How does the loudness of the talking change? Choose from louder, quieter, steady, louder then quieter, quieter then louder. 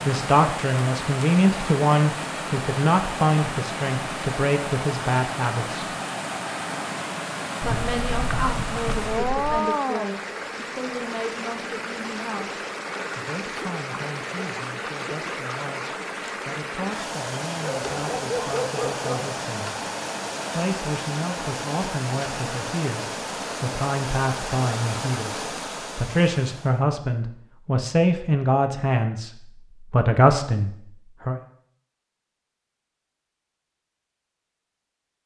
quieter then louder.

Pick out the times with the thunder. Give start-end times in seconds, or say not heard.
7.6-9.7.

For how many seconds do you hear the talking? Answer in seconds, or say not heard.
29 s.